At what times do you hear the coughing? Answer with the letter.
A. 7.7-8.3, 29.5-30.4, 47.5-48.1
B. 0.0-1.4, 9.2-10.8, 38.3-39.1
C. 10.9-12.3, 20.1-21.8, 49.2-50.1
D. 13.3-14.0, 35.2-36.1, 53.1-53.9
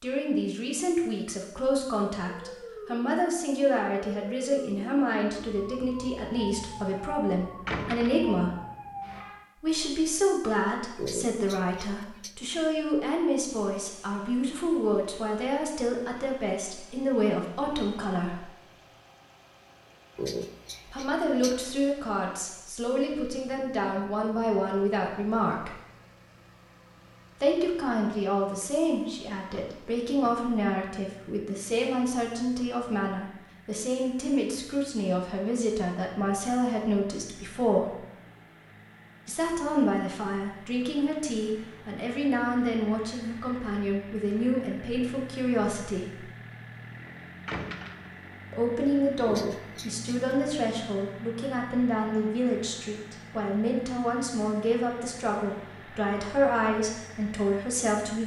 C.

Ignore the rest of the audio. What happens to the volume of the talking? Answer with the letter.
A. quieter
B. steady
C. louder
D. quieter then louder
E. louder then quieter
B.